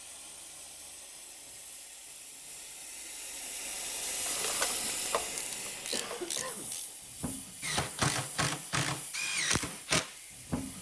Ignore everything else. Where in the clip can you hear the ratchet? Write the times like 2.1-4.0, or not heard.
4.2-6.8.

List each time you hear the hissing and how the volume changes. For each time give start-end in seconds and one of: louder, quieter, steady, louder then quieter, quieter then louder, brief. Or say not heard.
0.0-10.7 louder then quieter.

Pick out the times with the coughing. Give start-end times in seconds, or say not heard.
5.9-6.8.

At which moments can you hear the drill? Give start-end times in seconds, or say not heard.
7.2-10.7.